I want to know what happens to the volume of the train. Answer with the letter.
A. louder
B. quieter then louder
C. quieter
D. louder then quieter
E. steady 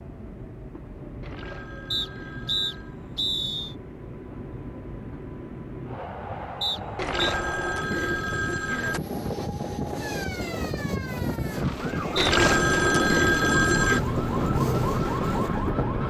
A.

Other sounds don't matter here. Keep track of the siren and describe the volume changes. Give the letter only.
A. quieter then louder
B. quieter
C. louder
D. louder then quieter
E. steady
C.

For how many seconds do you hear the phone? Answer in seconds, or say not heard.
6 s.